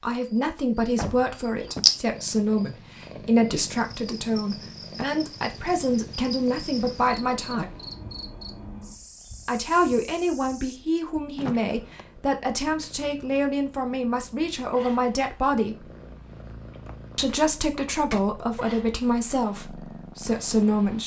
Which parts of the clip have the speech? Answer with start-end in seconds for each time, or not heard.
0.0-7.7, 9.4-15.9, 17.1-21.0.